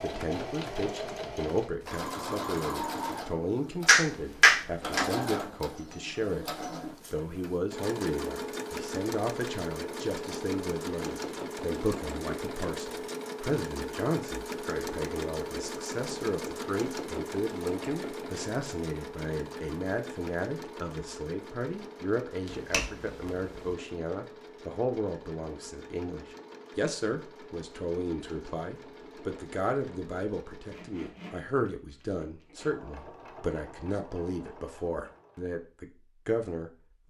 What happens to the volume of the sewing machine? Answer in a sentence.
The volume of the sewing machine goes down.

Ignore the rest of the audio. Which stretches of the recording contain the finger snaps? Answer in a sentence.
The finger snaps can be heard from 3.9 to 5.0 s and from 22.4 to 23.8 s.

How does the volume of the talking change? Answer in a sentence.
The volume of the talking stays about the same.